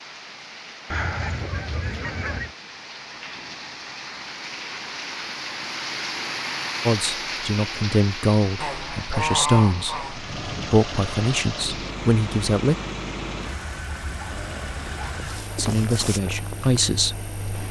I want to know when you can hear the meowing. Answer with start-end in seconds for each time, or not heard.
not heard.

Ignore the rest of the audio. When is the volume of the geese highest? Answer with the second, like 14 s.
9 s.